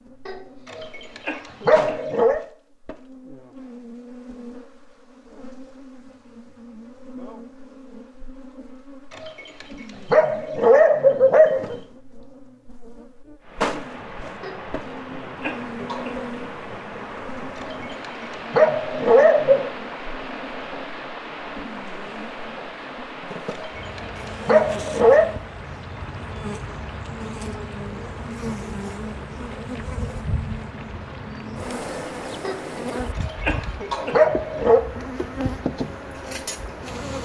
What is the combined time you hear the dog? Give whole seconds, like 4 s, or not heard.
10 s.